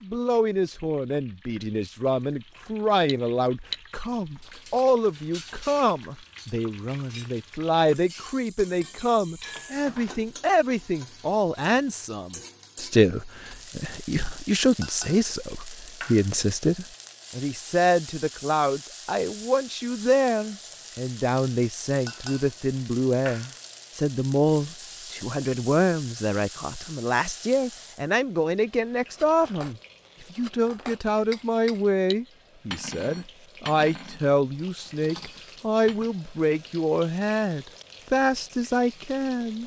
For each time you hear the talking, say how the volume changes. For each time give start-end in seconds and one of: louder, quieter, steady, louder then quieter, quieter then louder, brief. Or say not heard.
0.0-39.6 steady.